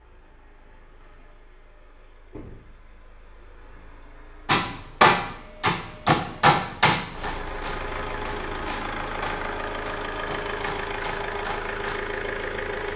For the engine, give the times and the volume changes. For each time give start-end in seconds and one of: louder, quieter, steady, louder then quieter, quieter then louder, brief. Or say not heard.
0.0-12.9 louder.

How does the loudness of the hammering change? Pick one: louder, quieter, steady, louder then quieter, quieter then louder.
quieter.